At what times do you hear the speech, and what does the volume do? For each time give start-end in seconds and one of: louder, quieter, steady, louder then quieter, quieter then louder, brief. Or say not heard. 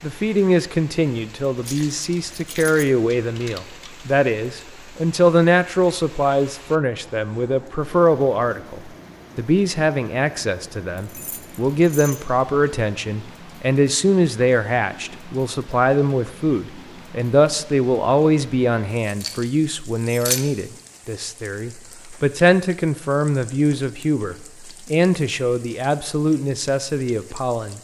0.0-27.7 steady.